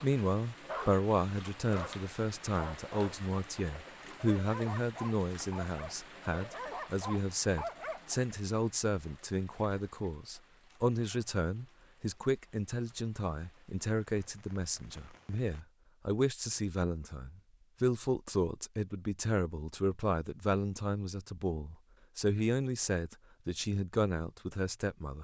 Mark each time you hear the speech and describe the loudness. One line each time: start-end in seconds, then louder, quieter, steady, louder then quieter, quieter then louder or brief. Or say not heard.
0.0-25.2 steady.